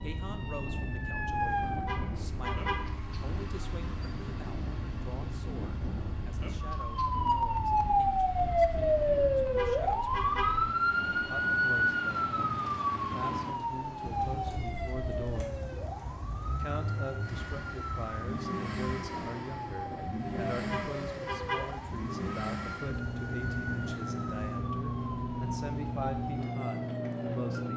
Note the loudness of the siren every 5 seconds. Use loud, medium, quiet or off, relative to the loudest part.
medium, loud, loud, quiet, quiet, quiet.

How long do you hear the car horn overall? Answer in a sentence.
The car horn can be heard for 3 seconds in total.